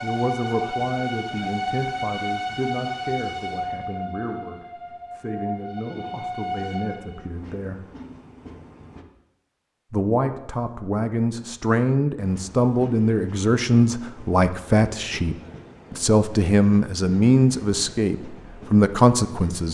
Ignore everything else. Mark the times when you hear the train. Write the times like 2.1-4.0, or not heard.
0.0-9.1, 12.2-19.6.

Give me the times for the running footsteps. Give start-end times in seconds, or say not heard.
not heard.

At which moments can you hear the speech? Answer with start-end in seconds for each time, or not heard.
0.0-7.8, 9.9-19.6.